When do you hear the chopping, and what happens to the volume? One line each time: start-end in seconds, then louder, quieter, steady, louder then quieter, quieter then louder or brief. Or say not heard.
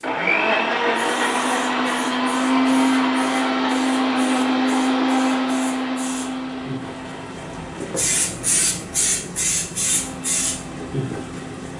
not heard.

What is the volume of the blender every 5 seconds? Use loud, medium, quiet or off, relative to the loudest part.
loud, medium, quiet.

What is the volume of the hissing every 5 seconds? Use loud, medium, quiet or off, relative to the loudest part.
quiet, loud, loud.